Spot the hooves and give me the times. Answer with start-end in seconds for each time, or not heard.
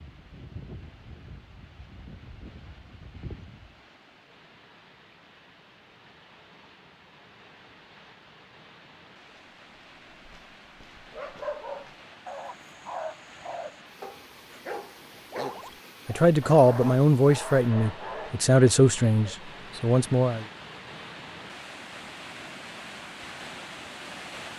0.0-3.8.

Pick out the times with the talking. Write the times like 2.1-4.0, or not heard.
16.1-20.4.